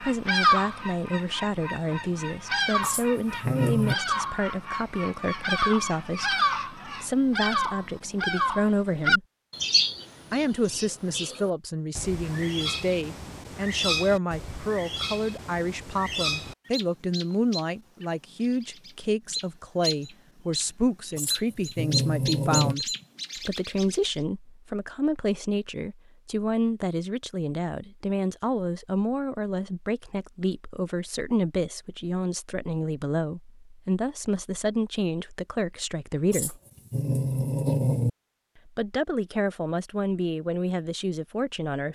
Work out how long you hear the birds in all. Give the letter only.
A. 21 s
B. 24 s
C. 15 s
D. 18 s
B.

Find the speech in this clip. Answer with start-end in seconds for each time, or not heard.
0.0-9.2, 10.3-36.6, 38.6-41.9.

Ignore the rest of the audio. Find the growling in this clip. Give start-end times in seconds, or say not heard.
2.8-4.0, 21.1-22.8, 36.3-38.1.